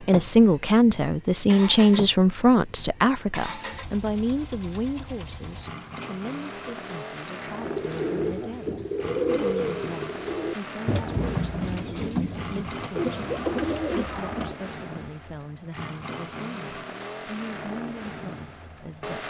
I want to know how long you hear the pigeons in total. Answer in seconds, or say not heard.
7 s.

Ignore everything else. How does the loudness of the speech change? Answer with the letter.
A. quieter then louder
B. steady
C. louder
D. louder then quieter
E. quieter
E.